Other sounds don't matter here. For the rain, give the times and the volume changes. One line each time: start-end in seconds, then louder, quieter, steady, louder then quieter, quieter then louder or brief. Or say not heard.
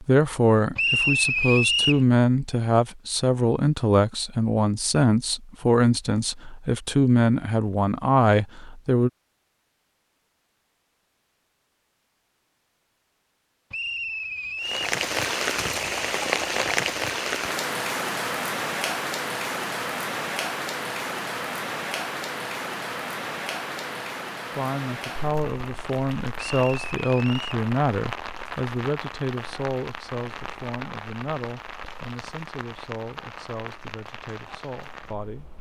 14.6-35.5 quieter.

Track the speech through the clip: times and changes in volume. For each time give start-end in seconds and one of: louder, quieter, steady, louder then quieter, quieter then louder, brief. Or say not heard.
0.0-9.1 steady
24.5-35.5 quieter.